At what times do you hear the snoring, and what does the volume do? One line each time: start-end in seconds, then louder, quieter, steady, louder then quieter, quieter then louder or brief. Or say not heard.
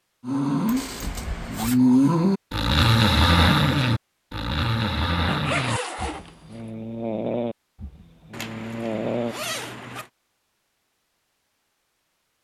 0.2-9.3 quieter.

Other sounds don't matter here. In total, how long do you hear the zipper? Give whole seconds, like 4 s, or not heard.
4 s.